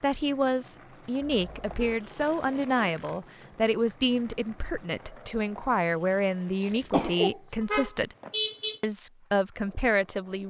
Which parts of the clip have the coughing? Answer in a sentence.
You can hear the coughing from 6.6 to 7.4 s.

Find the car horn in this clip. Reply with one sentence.
You can hear the car horn from 1.2 to 2.0 s and from 7.6 to 8.8 s.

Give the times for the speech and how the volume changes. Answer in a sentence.
You can hear the speech from 0.0 to 8.2 s, at a steady volume; and briefly from 8.8 to 10.4 s.